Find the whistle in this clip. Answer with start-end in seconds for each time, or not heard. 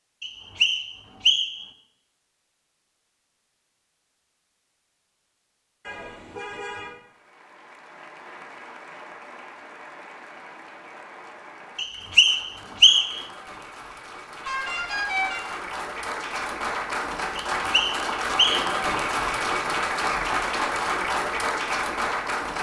0.2-1.6, 11.8-13.2, 17.4-18.8.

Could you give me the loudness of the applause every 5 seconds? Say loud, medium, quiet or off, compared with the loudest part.
off, quiet, quiet, loud, loud.